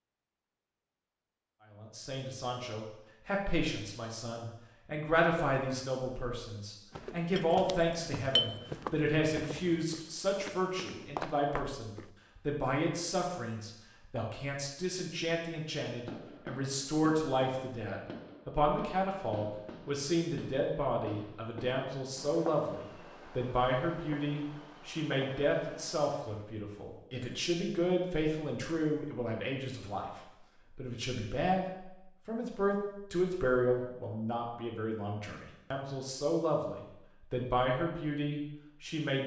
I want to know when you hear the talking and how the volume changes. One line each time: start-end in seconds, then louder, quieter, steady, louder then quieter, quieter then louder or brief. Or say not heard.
1.8-39.2 steady.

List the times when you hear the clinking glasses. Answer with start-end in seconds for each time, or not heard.
7.3-8.5.